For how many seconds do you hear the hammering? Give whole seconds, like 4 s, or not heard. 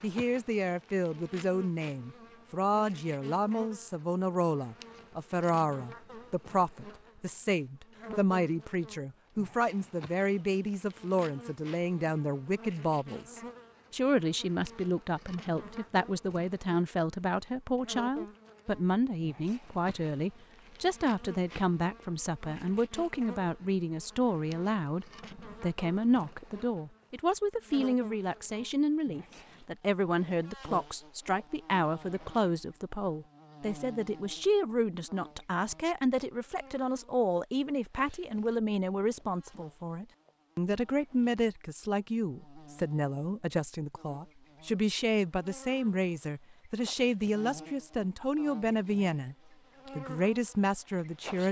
not heard.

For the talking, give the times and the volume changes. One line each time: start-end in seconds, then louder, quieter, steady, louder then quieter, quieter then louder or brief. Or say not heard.
0.0-49.4 steady
50.0-51.4 brief.